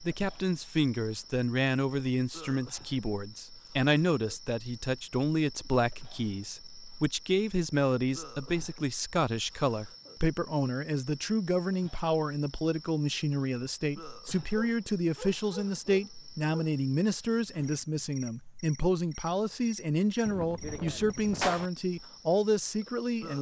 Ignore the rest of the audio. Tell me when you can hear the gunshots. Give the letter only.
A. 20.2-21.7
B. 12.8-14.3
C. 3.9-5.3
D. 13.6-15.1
A.